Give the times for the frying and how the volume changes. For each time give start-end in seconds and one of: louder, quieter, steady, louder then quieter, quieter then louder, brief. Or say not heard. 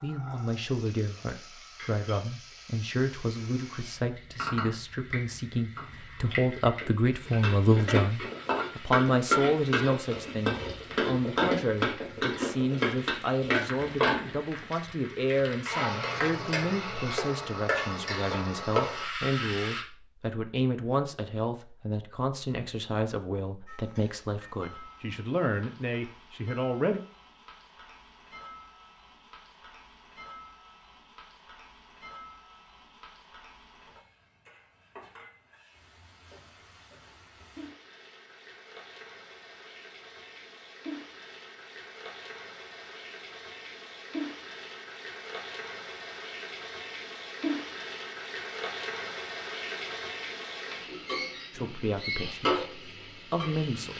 0.0-19.9 louder
23.6-53.9 louder.